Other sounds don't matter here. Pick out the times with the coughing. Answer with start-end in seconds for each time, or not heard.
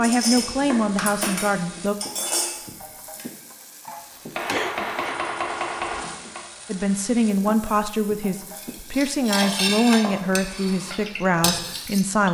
4.5-5.2.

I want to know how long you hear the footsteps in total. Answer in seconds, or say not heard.
not heard.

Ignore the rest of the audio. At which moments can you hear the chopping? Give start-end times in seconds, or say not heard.
0.7-1.8, 4.3-6.4, 9.4-10.3.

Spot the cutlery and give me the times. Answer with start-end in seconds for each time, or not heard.
0.0-3.2, 8.6-12.1.